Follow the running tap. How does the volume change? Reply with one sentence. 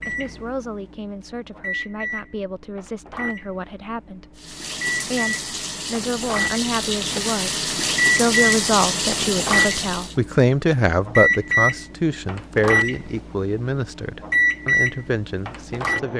The volume of the running tap goes up.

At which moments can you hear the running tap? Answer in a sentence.
You can hear the running tap from 4.3 to 10.2 s.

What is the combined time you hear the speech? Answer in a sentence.
You can hear the speech for 16 seconds altogether.